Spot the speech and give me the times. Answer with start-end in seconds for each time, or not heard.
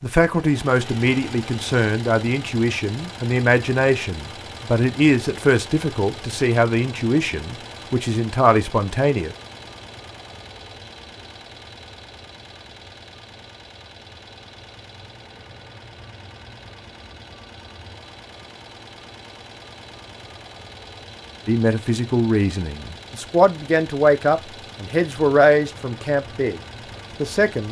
0.0-9.3, 21.4-26.6, 27.2-27.6.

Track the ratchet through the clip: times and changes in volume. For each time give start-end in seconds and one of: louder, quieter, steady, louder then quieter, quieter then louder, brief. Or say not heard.
not heard.